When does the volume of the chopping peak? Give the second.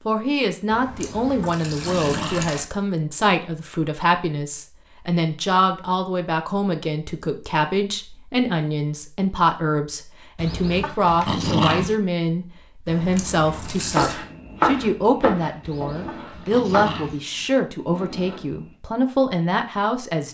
15 s.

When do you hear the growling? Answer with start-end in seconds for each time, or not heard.
0.9-2.5, 10.3-11.9, 15.6-17.2.